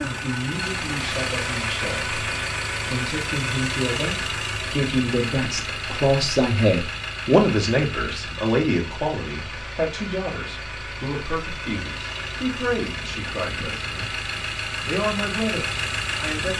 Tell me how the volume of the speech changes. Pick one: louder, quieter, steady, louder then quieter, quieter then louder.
louder then quieter.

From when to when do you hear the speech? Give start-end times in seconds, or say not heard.
0.0-16.5.